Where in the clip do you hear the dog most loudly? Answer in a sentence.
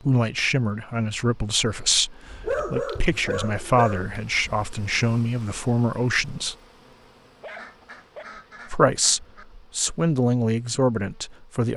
The loudest moment of the dog is at 3 seconds.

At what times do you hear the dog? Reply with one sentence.
You can hear the dog from 2.4 to 4.1 s and from 7.4 to 8.2 s.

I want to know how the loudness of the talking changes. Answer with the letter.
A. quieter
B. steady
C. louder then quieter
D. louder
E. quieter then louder
B.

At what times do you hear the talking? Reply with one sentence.
The talking can be heard from 0.0 to 6.5 s and from 8.7 to 11.7 s.